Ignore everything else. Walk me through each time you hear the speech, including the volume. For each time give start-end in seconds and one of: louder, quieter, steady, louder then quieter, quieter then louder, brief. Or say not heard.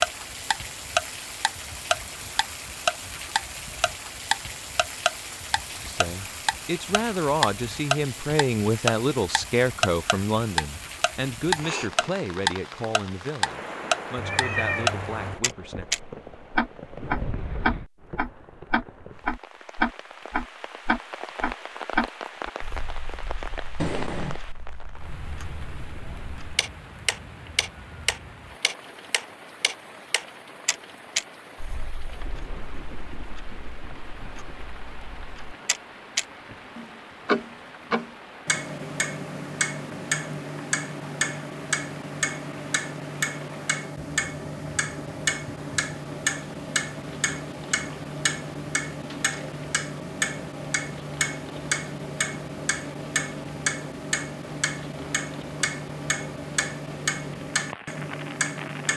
5.7-15.8 quieter.